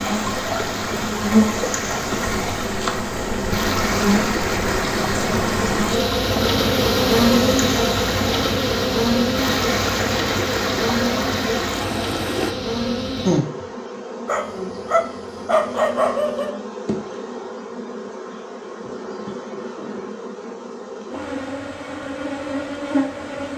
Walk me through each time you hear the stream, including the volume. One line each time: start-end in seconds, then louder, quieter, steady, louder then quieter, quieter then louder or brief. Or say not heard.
0.0-12.6 steady.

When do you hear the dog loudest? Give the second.
16 s.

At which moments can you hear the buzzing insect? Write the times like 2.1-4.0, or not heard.
0.0-23.5.